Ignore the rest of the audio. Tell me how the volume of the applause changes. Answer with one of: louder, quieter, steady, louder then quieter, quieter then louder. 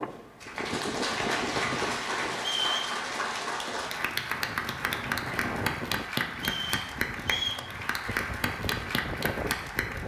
steady.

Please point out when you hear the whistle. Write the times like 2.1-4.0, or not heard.
2.4-3.0, 6.3-7.7.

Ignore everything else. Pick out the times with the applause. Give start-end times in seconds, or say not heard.
0.0-10.0.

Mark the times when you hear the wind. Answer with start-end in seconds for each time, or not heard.
0.0-10.0.